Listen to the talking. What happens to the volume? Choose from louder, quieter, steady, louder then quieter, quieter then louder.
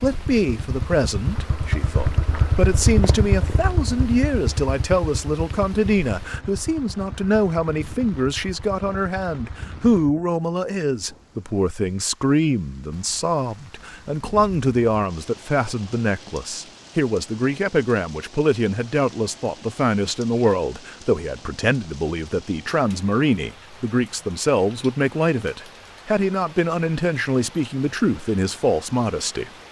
steady.